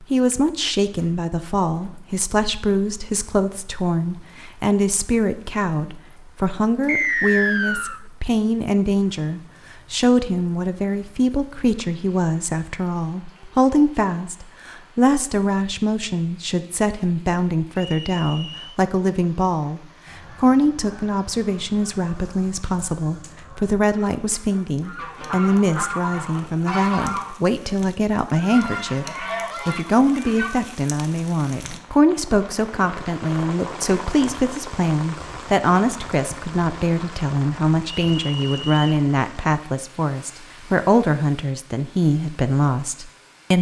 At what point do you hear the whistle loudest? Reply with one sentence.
The volume of the whistle peaks at 7 seconds.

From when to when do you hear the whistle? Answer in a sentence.
You can hear the whistle from 6.8 to 8.0 s, from 17.8 to 18.8 s and from 38.1 to 38.9 s.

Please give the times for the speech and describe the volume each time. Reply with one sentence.
The speech can be heard from 0.0 to 43.5 s, at a steady volume.